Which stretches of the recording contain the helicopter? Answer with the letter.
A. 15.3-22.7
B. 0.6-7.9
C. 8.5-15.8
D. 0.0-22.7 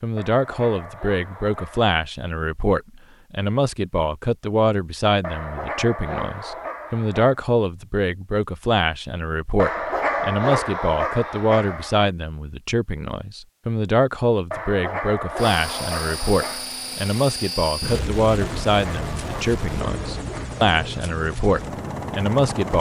A.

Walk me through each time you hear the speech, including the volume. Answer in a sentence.
The speech can be heard from 0.0 to 22.7 s, at a steady volume.